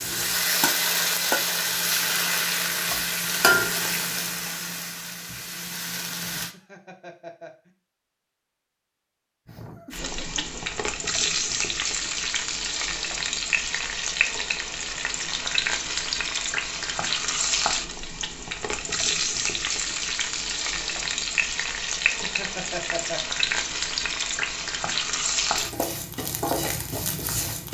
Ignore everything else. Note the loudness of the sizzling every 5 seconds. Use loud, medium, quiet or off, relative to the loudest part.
loud, medium, loud, loud, loud, loud.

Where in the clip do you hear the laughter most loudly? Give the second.
23 s.